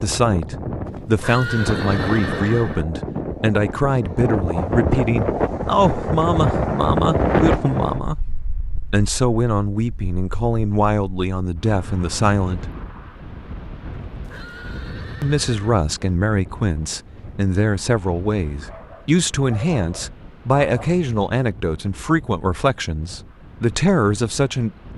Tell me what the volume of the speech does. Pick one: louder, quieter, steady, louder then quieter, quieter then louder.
steady.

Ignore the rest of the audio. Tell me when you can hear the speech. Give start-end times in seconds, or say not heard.
0.0-8.2, 8.9-12.7, 15.2-24.8.